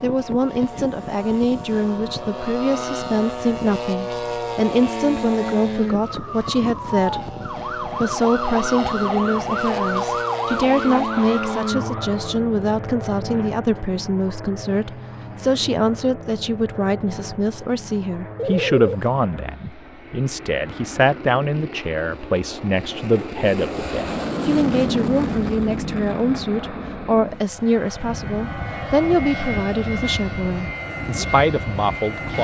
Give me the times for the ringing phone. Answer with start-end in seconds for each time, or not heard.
18.4-19.0.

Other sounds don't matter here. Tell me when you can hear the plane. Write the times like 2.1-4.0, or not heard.
0.0-32.3.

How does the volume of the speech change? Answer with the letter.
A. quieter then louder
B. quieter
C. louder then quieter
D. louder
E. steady
E.